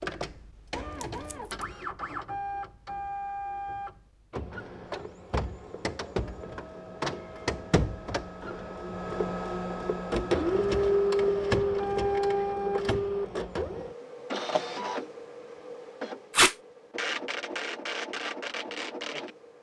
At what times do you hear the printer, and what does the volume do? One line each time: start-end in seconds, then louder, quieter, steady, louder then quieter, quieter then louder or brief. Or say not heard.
0.0-19.5 louder then quieter.